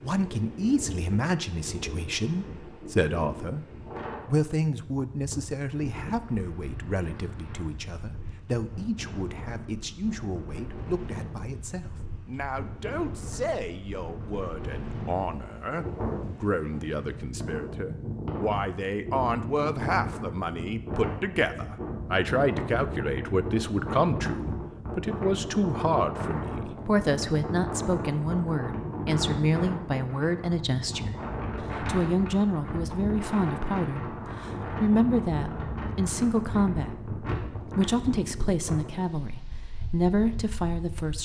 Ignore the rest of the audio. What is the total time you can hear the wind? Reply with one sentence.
You can hear the wind for 41 seconds altogether.